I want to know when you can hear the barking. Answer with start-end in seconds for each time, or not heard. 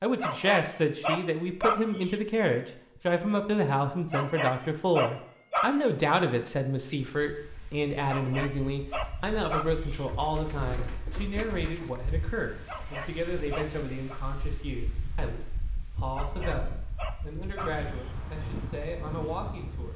0.2-2.2, 4.1-5.9, 8.1-10.1, 12.7-14.2, 16.1-18.1.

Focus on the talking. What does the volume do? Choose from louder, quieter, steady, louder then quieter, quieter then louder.
quieter.